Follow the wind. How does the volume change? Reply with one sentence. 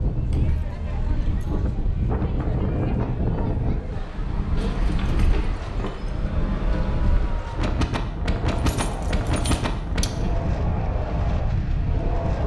The loudness of the wind stays about the same.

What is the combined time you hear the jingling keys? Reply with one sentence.
You can hear the jingling keys for 5 seconds altogether.